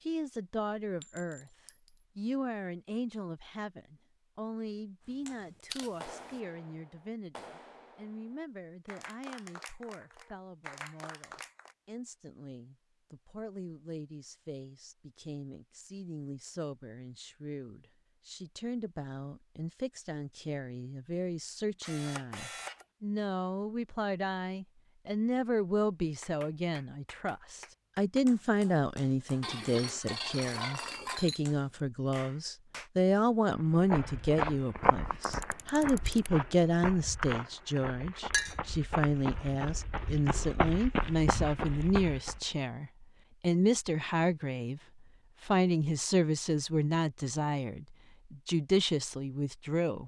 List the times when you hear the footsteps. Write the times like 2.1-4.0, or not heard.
33.5-42.4.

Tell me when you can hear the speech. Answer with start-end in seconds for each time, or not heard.
0.1-1.5, 2.1-44.8, 45.4-50.0.